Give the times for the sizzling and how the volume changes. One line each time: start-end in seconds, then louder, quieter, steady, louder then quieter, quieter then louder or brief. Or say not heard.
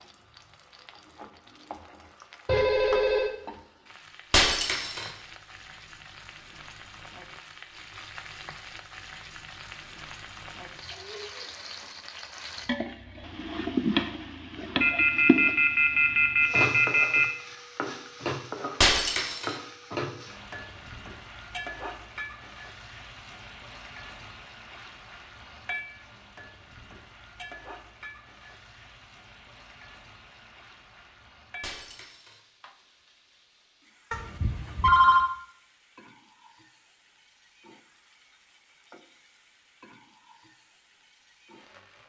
0.0-42.0 louder then quieter.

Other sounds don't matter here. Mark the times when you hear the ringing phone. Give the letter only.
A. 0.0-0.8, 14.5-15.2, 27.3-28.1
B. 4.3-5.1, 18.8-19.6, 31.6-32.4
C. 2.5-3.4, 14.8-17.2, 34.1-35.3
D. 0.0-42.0
C.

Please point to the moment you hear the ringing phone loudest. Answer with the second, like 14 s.
35 s.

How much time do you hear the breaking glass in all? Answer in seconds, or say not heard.
2 s.